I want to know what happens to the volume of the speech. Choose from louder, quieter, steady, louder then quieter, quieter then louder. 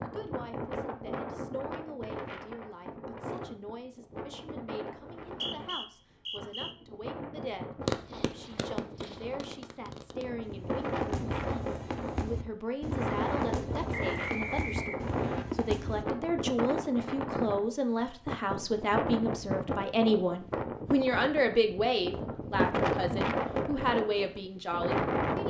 louder.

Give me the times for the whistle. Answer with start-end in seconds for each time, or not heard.
5.2-6.8, 13.9-15.4.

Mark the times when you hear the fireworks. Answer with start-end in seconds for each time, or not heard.
7.8-16.1.